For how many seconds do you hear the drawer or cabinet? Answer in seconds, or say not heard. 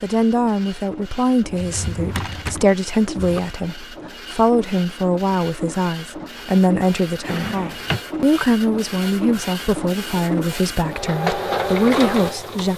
3 s.